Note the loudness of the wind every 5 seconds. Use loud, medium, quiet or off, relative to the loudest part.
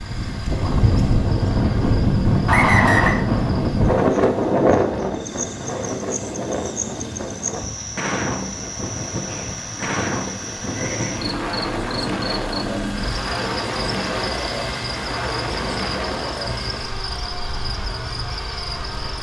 loud, medium, medium, medium.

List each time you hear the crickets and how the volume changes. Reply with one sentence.
The crickets can be heard from 0.0 to 19.1 s, getting louder.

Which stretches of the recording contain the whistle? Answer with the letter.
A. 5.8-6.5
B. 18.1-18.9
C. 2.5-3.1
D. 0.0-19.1
C.